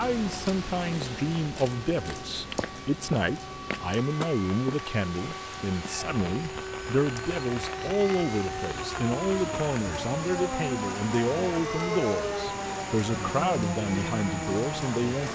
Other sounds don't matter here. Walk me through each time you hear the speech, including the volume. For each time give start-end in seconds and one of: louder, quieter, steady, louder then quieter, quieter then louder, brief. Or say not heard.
0.0-15.2 steady.